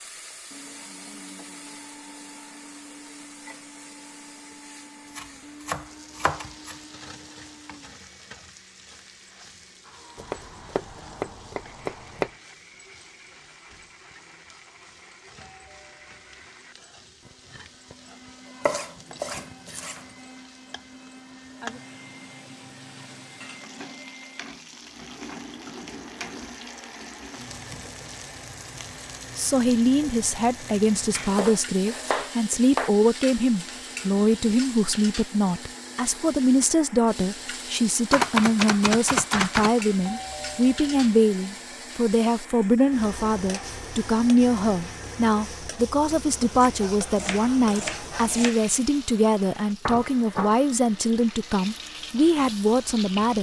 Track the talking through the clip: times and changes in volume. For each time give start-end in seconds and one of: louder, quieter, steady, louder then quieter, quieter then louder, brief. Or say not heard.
29.4-53.3 steady.